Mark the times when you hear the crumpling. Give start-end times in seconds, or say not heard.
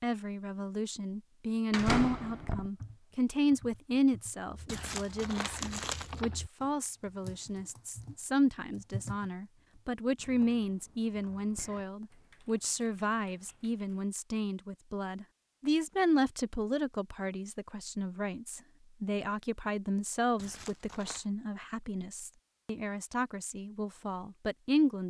4.7-6.2, 20.4-21.2.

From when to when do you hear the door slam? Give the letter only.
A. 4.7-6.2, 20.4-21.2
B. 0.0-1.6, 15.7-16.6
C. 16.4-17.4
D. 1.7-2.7
D.